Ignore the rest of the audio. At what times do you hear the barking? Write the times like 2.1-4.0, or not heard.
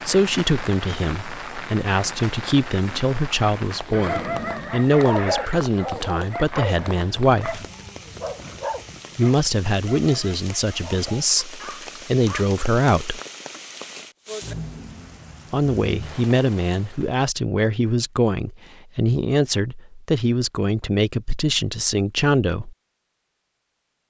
4.0-12.4.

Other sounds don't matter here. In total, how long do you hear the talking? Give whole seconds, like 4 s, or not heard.
19 s.